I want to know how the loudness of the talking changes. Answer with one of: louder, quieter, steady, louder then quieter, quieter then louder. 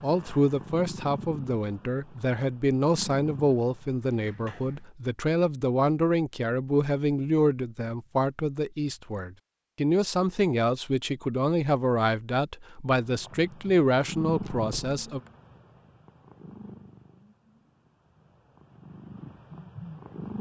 steady.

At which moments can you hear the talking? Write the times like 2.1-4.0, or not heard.
0.0-15.2.